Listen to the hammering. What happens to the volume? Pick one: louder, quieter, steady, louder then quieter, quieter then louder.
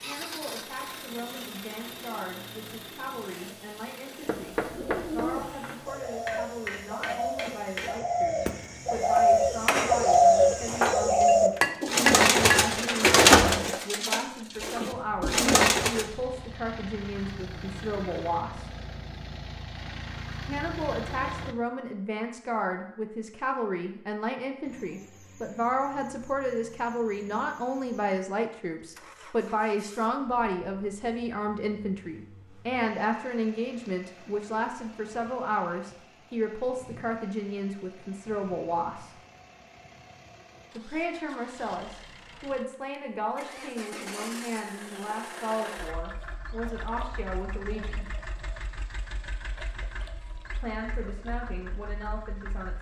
louder.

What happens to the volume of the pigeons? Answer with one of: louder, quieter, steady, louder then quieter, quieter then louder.
louder then quieter.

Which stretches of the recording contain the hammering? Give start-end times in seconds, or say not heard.
4.2-12.7.